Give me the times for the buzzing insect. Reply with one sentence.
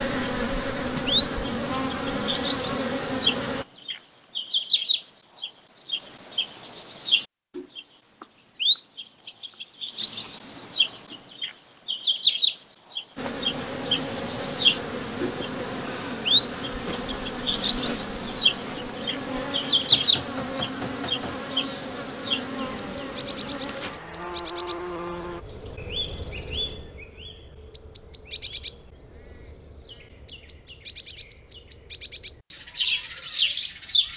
You can hear the buzzing insect from 0.0 to 3.6 s and from 13.2 to 25.4 s.